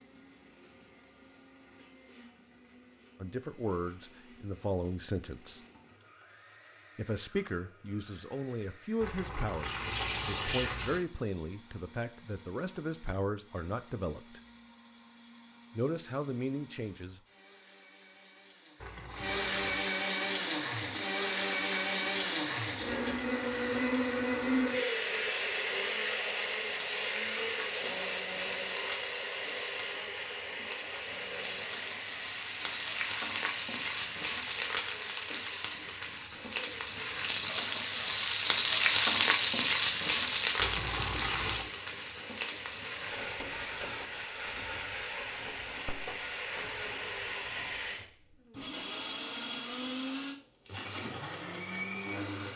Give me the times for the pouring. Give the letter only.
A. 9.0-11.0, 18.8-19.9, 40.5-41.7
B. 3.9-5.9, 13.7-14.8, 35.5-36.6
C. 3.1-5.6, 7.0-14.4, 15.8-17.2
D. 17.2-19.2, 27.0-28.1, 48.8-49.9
A.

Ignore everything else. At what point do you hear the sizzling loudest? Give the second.
39 s.